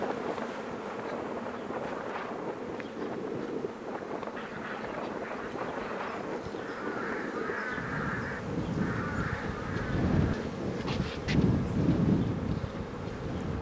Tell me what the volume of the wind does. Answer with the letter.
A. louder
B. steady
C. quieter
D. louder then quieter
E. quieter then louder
A.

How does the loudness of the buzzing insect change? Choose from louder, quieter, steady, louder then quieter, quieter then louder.
steady.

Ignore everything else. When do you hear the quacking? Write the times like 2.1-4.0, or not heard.
4.0-10.5.